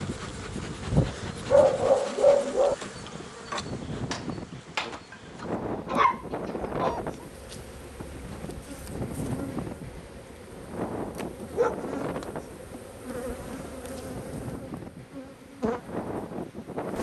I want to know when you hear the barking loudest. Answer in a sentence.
The volume of the barking peaks at 2 seconds.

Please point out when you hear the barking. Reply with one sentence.
You can hear the barking from 0.9 to 2.8 s, from 5.7 to 7.0 s and from 11.6 to 12.2 s.